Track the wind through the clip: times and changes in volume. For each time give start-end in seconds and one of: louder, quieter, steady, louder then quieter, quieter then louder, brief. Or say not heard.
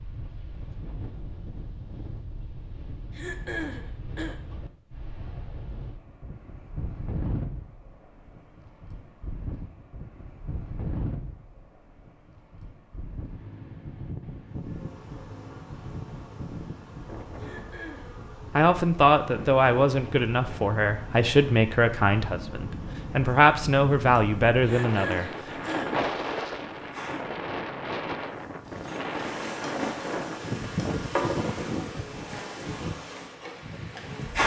0.0-34.4 louder.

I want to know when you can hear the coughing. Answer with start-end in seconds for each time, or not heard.
3.1-4.4, 17.4-18.1, 24.6-26.1.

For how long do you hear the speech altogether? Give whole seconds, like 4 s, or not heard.
7 s.